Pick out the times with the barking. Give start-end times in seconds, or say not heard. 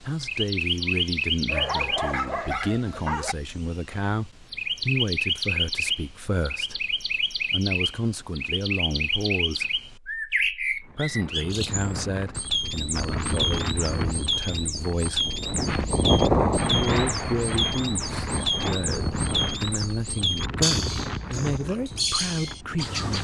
1.4-3.4.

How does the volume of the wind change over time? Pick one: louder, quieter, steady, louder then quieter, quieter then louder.
louder then quieter.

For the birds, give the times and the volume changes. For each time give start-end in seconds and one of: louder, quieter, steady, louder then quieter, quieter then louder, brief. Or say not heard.
0.0-23.1 steady.